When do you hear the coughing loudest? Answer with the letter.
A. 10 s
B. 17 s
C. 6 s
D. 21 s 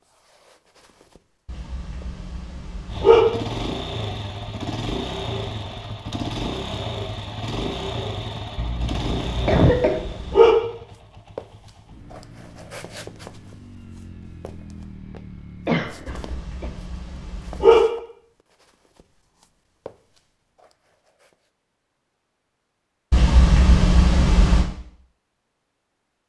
A.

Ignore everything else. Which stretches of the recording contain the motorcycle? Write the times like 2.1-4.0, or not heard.
2.9-16.4.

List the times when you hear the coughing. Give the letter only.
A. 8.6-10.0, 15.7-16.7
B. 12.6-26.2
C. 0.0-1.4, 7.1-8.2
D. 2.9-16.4
A.